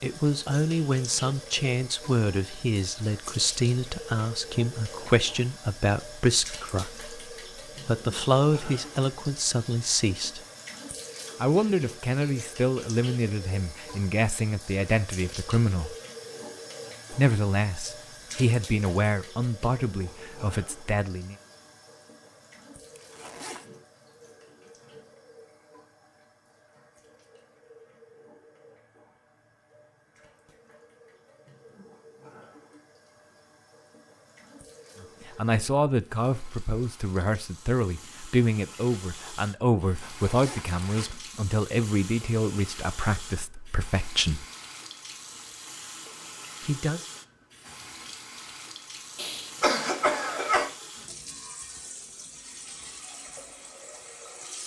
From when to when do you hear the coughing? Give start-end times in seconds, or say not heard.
49.1-50.7.